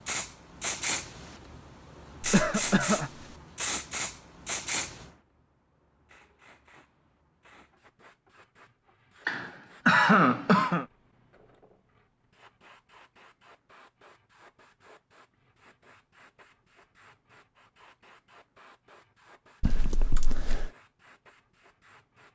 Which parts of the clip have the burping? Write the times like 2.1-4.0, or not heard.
not heard.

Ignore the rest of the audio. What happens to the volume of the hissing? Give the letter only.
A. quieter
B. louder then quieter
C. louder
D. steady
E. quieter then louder
A.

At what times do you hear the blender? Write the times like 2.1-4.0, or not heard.
not heard.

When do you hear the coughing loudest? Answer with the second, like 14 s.
10 s.